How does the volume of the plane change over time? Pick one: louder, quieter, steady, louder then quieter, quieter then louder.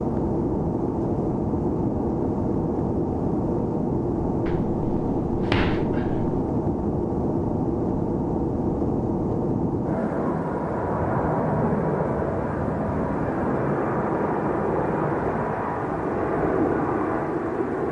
steady.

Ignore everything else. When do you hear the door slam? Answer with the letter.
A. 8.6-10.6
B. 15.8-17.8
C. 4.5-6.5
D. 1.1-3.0
C.